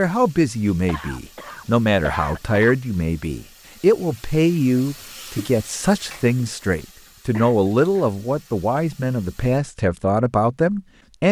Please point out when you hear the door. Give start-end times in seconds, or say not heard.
not heard.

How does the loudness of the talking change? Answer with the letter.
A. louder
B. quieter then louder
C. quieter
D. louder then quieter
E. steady
E.